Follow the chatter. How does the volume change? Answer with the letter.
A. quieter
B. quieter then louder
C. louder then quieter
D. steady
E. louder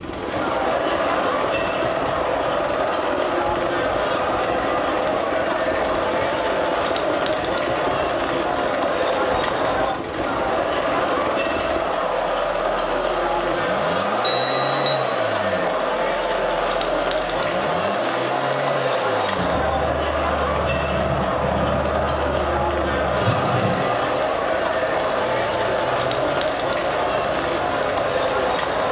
D.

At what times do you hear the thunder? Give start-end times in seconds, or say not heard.
19.4-23.9.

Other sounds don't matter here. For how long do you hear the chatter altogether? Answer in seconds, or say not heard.
29 s.